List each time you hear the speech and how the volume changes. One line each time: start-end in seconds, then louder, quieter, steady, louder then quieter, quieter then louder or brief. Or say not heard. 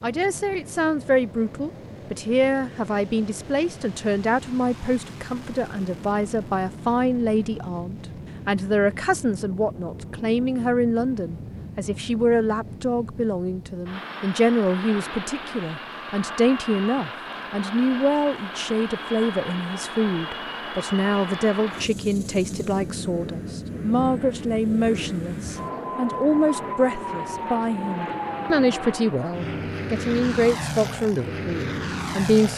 0.0-32.5 steady.